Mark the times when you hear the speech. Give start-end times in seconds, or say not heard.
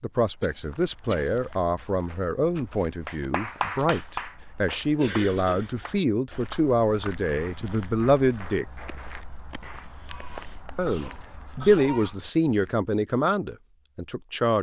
0.0-8.7, 10.8-14.5.